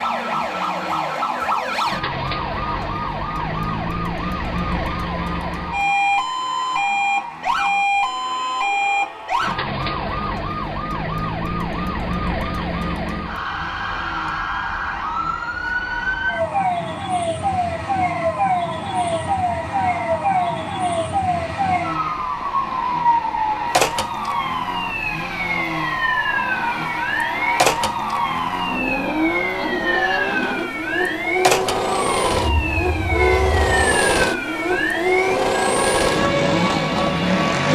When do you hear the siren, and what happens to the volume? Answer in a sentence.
You can hear the siren from 0.0 to 37.7 s, at a steady volume.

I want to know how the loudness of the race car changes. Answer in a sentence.
The loudness of the race car goes up.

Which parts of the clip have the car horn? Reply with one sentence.
You can hear the car horn from 32.3 to 33.8 s.